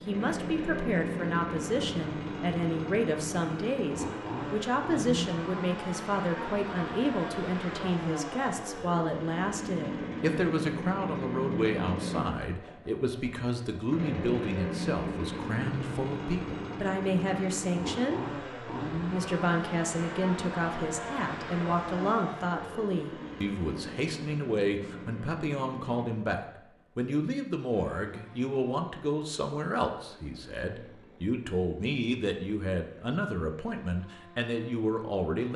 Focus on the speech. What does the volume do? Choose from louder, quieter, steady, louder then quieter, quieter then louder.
steady.